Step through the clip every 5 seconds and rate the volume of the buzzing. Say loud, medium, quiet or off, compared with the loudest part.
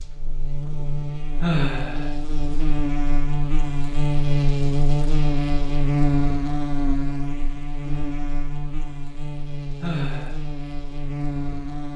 loud, loud, medium.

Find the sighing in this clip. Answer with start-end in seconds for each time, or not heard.
1.4-2.1, 9.8-10.4.